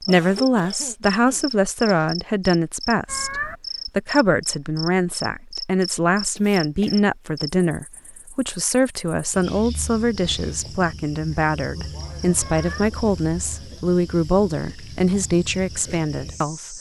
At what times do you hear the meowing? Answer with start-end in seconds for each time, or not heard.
3.0-3.5, 12.4-12.9.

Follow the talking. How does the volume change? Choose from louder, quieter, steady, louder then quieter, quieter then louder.
steady.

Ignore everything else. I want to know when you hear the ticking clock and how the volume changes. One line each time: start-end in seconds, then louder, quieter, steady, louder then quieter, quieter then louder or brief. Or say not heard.
not heard.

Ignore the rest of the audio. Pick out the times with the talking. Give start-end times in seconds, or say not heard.
0.0-16.7.